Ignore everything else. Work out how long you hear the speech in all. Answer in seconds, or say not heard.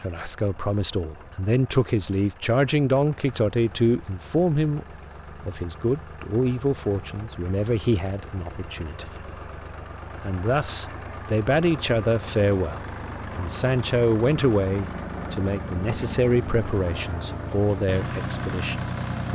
18 s.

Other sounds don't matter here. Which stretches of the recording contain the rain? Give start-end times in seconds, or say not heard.
not heard.